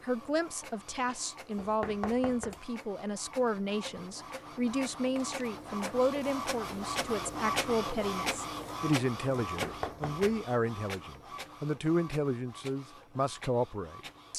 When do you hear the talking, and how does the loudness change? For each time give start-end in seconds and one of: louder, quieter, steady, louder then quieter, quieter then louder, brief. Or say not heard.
0.0-14.3 steady.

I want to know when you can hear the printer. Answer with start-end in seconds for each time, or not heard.
0.0-14.3.